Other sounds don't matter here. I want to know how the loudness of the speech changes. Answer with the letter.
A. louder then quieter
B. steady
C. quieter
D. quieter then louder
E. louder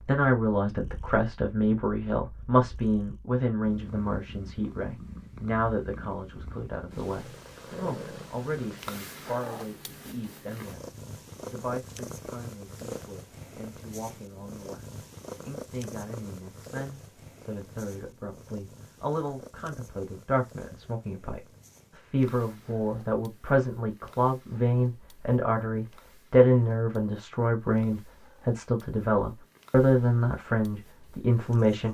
D.